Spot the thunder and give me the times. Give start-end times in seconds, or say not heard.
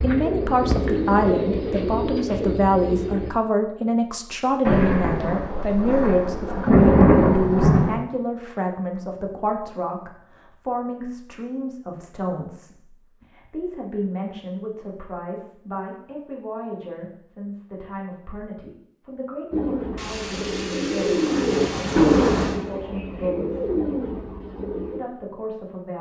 4.7-8.0, 19.9-22.6.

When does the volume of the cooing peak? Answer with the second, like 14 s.
22 s.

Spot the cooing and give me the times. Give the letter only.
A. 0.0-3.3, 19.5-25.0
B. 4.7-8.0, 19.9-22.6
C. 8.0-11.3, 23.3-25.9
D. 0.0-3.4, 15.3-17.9
A.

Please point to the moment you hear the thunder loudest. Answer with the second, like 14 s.
7 s.